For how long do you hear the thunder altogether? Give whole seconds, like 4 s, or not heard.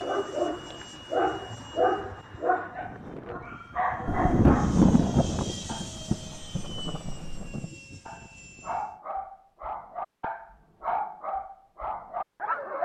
4 s.